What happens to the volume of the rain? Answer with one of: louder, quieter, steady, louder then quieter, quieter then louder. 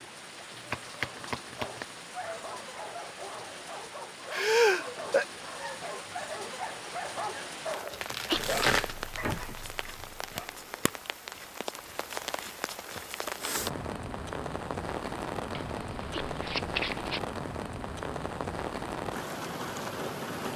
louder.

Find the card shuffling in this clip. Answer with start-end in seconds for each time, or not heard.
0.6-1.9, 7.9-9.6, 15.5-17.2.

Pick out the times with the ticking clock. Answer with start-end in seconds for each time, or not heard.
not heard.